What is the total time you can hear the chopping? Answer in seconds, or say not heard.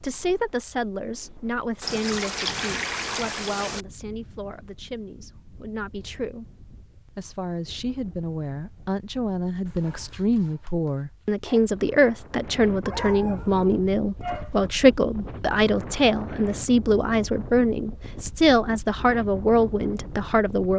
not heard.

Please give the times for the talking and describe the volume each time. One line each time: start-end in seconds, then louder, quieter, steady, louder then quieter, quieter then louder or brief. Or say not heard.
0.0-6.5 quieter
7.1-20.7 louder.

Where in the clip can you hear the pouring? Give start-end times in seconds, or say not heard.
1.8-3.9.